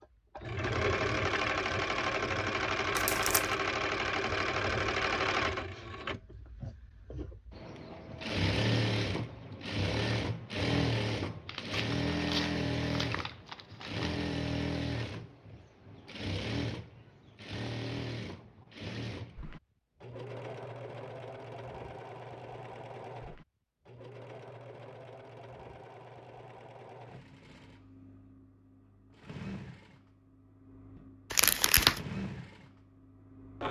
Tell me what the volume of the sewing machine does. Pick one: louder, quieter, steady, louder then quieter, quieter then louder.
quieter.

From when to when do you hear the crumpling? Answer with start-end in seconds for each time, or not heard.
3.0-3.5, 11.4-14.2, 31.3-32.0.